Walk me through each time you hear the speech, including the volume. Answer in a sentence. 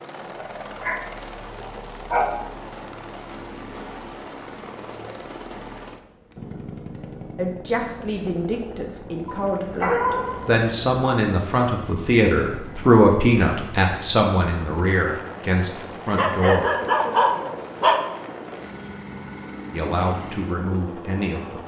The speech can be heard from 7.3 to 16.7 s, getting louder then quieter; and briefly from 19.7 to 21.6 s.